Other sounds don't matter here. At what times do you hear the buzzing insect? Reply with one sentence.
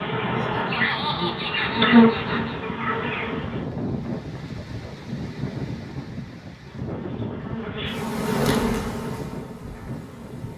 You can hear the buzzing insect from 0.0 to 3.6 s and from 6.5 to 10.5 s.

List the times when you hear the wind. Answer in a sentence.
The wind can be heard from 0.1 to 10.5 s.